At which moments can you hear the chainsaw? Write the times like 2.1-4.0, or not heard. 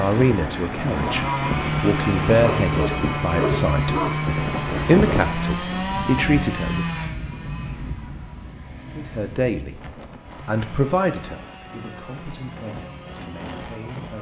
0.0-14.1.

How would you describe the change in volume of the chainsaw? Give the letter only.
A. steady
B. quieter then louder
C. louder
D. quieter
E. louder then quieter
D.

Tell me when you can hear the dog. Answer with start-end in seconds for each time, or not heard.
2.4-4.1.